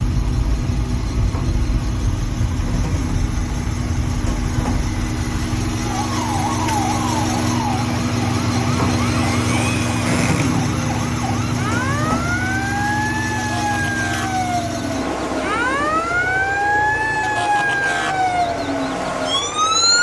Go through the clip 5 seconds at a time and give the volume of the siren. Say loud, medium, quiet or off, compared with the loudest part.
medium, medium, medium, loud.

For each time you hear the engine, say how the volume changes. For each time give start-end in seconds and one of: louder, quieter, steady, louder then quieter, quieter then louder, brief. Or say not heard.
0.0-19.9 louder then quieter.